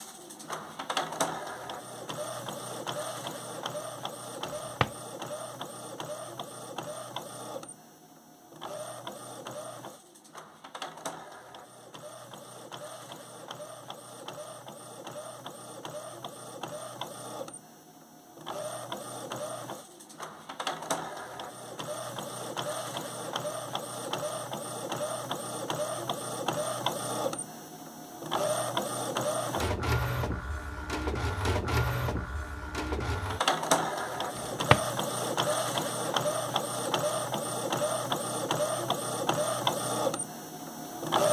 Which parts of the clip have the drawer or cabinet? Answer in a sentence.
You can hear the drawer or cabinet from 4.5 to 5.0 s and from 34.4 to 34.9 s.